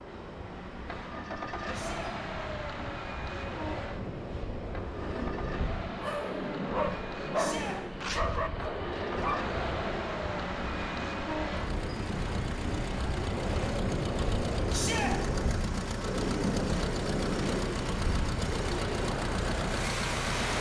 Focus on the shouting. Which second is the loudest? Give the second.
15 s.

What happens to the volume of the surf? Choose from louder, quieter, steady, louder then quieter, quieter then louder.
louder.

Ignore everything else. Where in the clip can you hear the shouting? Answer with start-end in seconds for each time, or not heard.
1.7-2.1, 7.3-7.8, 14.7-15.2.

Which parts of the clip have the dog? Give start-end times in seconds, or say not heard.
6.0-9.5.